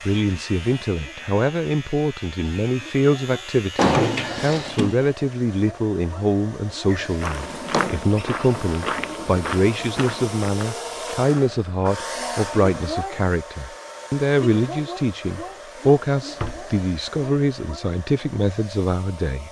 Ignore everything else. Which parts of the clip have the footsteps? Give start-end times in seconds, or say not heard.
6.8-12.3.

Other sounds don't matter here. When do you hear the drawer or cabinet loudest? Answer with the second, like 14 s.
4 s.